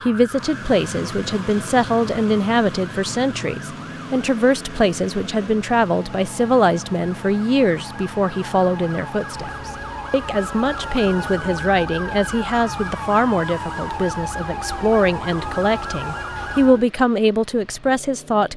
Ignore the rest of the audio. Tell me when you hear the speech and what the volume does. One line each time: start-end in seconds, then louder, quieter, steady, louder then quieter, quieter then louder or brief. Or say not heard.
0.1-18.5 steady.